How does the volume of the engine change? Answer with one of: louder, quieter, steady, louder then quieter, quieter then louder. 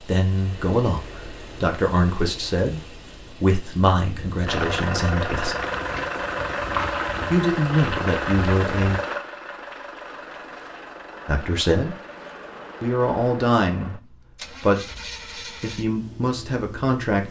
quieter.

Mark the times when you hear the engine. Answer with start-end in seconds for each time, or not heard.
4.5-17.2.